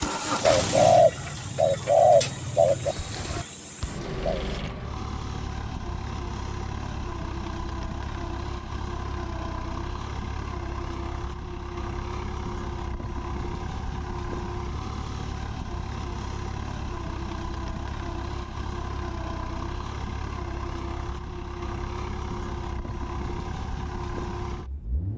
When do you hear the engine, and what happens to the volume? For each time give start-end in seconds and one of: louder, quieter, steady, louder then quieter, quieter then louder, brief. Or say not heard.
0.0-25.1 steady.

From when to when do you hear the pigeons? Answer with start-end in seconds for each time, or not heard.
0.0-4.4.